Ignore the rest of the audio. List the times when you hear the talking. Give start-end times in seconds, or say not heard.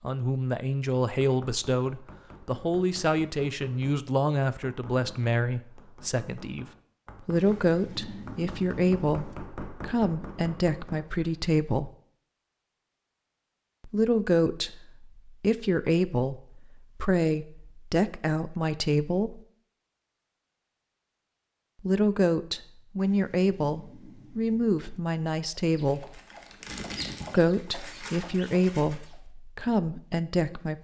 0.0-11.9, 13.8-19.4, 21.8-26.2, 27.3-30.7.